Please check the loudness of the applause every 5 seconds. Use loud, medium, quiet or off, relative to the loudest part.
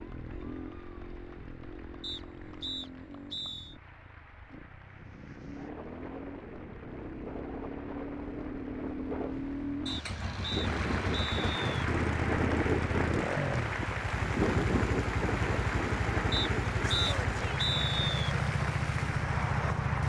quiet, quiet, loud, loud.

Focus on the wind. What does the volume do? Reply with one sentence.
The volume of the wind goes up, then down.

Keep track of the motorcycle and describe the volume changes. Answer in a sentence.
The volume of the motorcycle goes up.